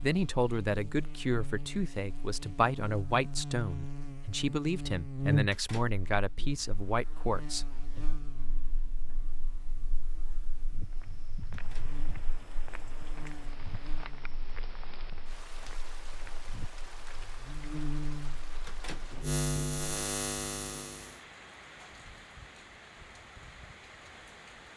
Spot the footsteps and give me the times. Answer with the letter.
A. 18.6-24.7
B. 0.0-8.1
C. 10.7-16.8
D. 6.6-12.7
C.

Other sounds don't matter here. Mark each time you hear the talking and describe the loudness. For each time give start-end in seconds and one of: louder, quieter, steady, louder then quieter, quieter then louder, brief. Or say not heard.
0.0-8.1 steady.